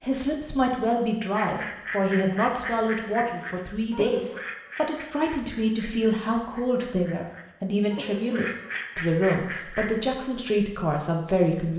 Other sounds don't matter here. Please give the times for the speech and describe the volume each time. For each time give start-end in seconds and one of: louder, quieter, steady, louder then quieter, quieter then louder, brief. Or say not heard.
0.0-11.7 steady.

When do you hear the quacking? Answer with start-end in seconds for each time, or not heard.
1.4-9.9.